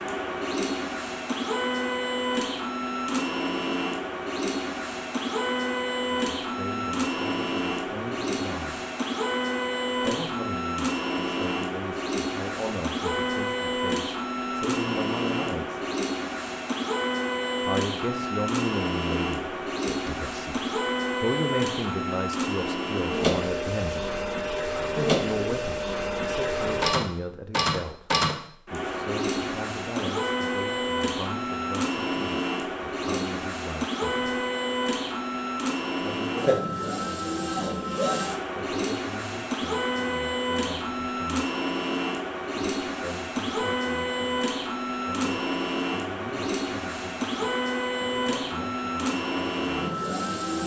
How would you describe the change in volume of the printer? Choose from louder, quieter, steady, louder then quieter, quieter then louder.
steady.